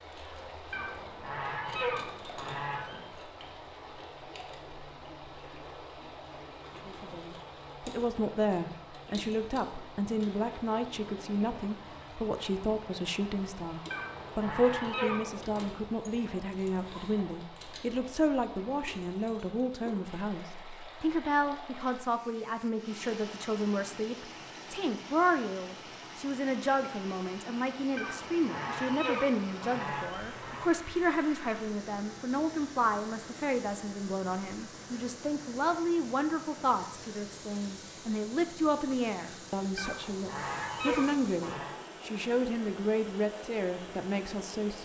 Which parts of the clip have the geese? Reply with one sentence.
You can hear the geese from 0.7 to 3.1 s, from 13.9 to 15.7 s, from 27.9 to 30.7 s and from 39.8 to 41.8 s.